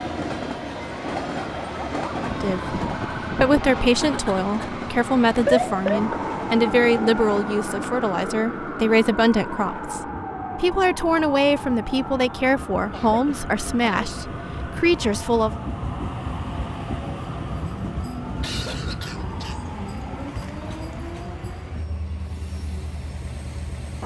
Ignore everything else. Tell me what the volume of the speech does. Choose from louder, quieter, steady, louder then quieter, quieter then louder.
steady.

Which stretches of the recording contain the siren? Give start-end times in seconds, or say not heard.
0.0-20.4.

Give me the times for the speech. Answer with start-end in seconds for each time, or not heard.
2.2-15.6.